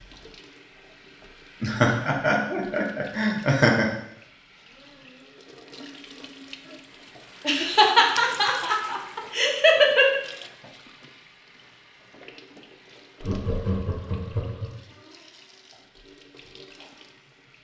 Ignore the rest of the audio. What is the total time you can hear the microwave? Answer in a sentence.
You can't hear the microwave here.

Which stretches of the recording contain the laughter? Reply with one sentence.
You can hear the laughter from 1.6 to 3.9 s, from 7.5 to 10.2 s and from 13.2 to 14.8 s.